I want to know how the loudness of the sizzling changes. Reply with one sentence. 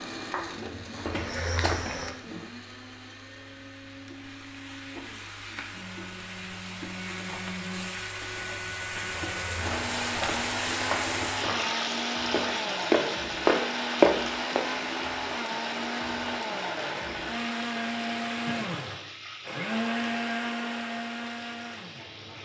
The loudness of the sizzling goes up, then down.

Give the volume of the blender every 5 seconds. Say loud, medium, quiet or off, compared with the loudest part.
medium, medium, loud, loud, loud.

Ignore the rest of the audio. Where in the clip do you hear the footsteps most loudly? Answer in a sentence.
The volume of the footsteps peaks at 14 seconds.